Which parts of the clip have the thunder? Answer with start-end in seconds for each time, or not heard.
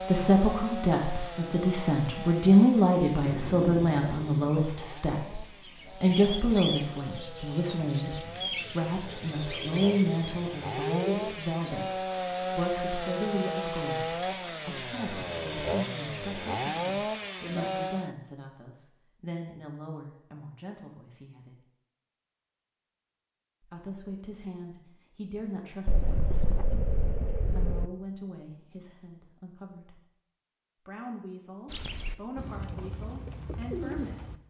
3.2-4.7, 25.9-27.9.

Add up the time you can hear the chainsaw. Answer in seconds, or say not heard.
18 s.